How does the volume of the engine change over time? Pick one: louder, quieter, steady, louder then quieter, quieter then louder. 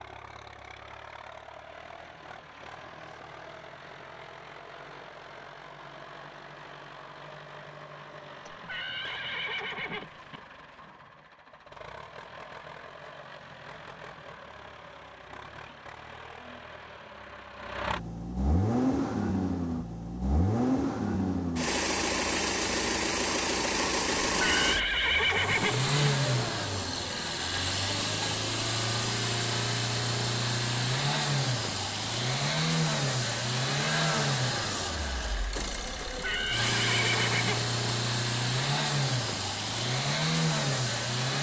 louder.